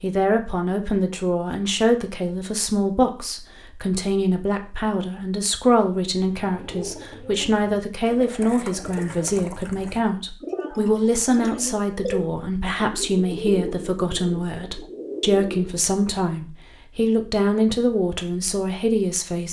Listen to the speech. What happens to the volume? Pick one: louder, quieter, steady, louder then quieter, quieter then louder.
steady.